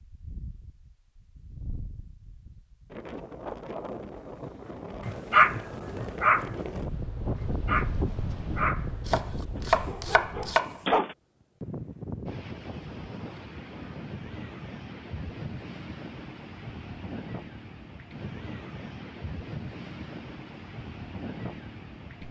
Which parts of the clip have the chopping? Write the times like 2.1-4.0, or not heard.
9.1-10.8.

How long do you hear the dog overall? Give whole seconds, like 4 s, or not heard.
6 s.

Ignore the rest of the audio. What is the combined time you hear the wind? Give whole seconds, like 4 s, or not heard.
22 s.